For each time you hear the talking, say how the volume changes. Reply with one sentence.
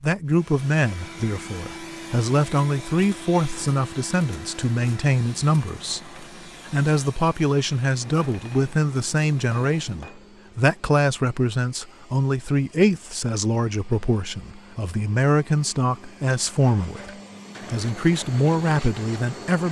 You can hear the talking from 0.0 to 17.1 s, at a steady volume; and briefly from 17.7 to 19.6 s.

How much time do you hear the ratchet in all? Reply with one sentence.
The ratchet can't be heard in this clip.